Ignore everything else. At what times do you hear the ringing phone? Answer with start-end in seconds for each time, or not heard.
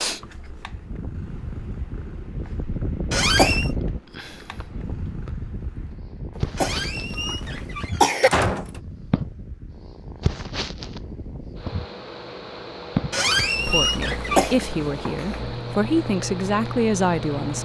not heard.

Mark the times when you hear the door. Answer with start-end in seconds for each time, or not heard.
3.1-3.7, 6.5-8.8, 13.1-14.6.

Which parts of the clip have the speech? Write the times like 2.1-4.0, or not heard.
13.6-17.6.